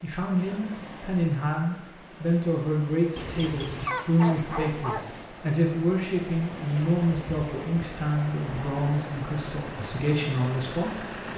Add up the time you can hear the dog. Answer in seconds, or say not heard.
2 s.